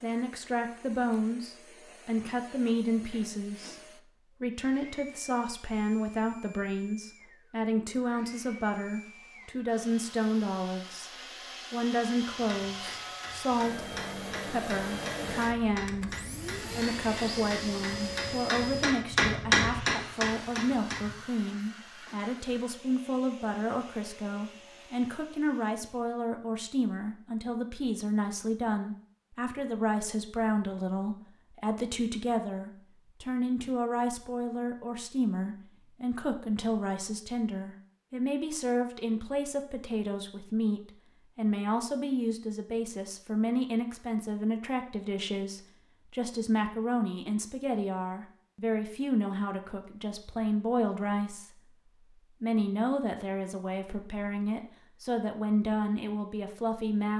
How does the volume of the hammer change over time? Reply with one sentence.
The loudness of the hammer goes up.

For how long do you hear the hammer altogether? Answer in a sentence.
The hammer can be heard for 9 seconds in total.